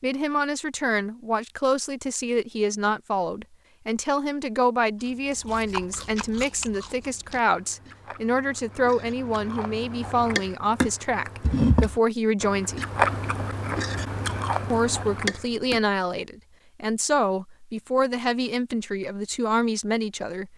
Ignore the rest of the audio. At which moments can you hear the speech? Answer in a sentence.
You can hear the speech from 0.0 to 12.8 s and from 14.7 to 20.5 s.